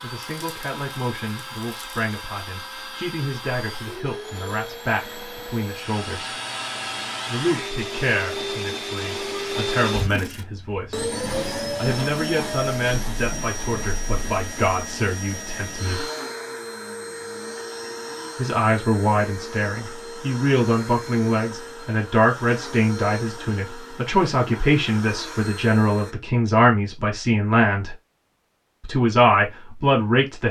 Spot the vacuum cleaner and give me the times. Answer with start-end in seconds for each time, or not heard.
0.0-26.1.